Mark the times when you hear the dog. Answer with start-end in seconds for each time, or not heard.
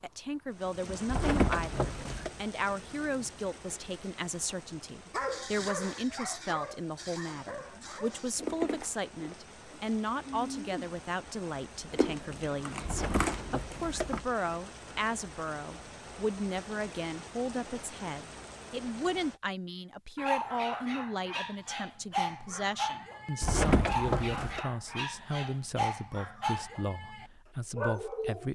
5.1-8.3, 20.1-28.5.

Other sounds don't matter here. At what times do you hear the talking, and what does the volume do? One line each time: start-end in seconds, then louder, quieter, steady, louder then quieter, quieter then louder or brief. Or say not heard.
0.0-28.5 steady.